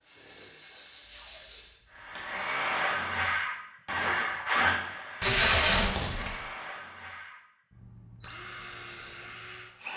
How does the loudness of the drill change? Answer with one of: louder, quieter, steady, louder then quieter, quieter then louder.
quieter.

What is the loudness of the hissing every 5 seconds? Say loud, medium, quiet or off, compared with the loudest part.
loud, off.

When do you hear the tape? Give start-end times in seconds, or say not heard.
1.1-2.2, 5.2-6.4.